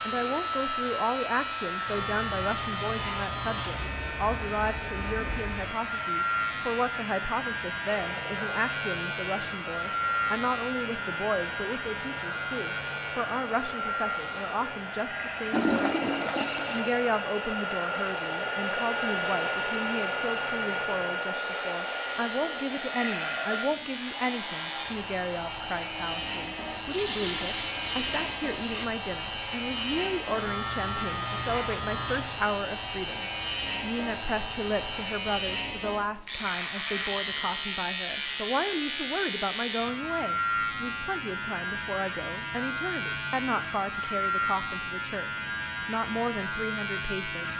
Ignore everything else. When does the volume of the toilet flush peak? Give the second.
16 s.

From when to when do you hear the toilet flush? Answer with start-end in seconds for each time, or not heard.
15.5-16.9, 26.9-28.9.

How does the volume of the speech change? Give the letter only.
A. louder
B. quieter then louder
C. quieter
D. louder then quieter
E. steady
E.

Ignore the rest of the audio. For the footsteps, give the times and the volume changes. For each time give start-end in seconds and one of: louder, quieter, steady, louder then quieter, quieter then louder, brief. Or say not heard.
not heard.